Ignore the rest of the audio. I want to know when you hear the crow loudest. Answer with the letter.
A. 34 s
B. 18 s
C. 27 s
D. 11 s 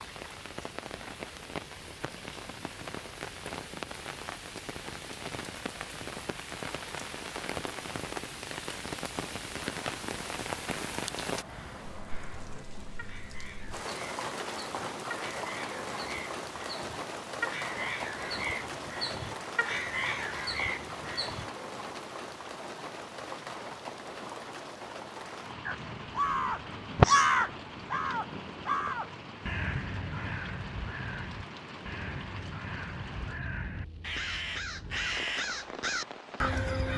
C.